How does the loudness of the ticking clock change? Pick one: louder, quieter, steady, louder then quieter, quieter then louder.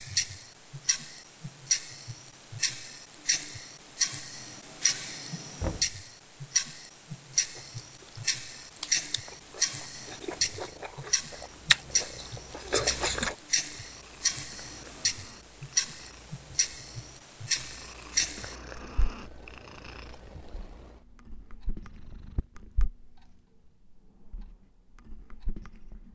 quieter.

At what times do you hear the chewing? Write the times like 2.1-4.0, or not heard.
7.3-13.3.